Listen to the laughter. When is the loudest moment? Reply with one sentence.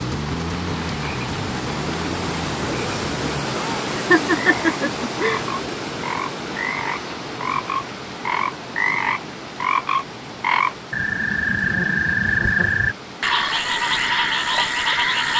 The volume of the laughter peaks at 4 seconds.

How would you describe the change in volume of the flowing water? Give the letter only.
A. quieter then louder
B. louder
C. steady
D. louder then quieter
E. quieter
E.